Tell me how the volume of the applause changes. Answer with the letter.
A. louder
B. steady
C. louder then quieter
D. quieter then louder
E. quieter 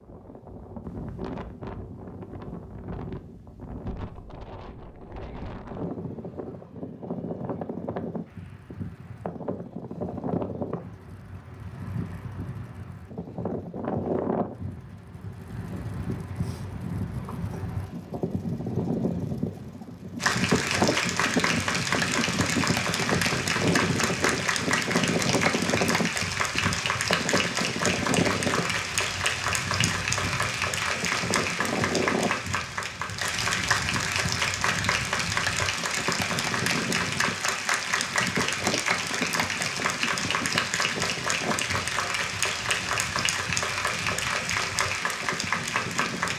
B.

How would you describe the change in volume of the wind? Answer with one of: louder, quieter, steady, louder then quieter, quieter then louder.
louder then quieter.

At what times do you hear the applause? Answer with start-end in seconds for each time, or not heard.
20.2-46.3.